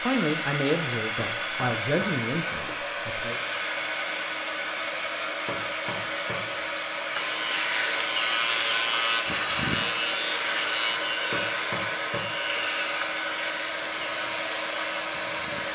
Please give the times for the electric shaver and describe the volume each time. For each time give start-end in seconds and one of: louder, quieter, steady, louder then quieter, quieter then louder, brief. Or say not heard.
7.2-15.7 quieter.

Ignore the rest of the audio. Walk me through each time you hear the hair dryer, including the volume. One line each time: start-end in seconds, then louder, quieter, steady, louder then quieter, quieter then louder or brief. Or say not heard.
0.0-15.7 steady.